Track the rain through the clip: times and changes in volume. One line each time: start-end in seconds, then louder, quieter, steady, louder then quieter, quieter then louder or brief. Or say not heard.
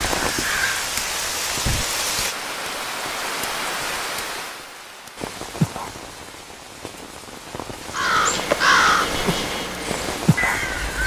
0.0-11.0 quieter then louder.